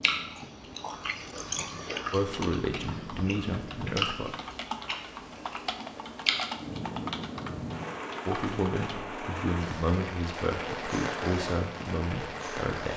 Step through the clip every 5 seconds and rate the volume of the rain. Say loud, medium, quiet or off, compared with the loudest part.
medium, loud, loud.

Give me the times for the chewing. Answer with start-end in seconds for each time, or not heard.
0.0-6.5.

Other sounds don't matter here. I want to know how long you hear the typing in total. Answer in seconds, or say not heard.
7 s.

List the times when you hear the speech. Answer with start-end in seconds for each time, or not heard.
2.1-4.3, 8.2-12.9.